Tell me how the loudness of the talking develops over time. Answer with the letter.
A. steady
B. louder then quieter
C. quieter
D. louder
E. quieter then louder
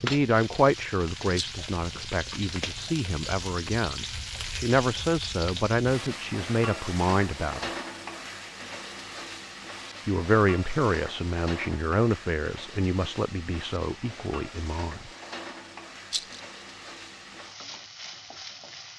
C.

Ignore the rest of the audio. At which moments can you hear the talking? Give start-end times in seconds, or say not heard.
0.0-7.7, 10.1-15.1.